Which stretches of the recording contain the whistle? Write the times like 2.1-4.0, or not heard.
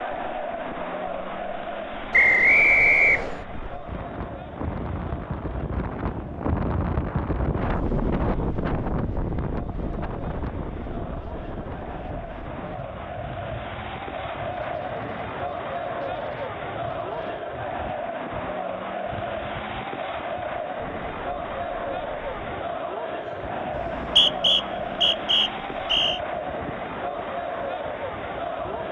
2.1-3.4, 23.8-26.2.